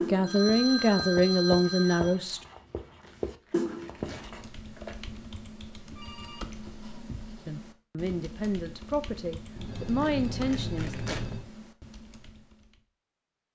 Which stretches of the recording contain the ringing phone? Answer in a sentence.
The ringing phone can be heard from 0.2 to 2.2 s, from 6.0 to 7.5 s and from 9.6 to 11.4 s.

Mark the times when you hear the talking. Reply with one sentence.
The talking can be heard from 0.1 to 2.4 s and from 7.5 to 10.9 s.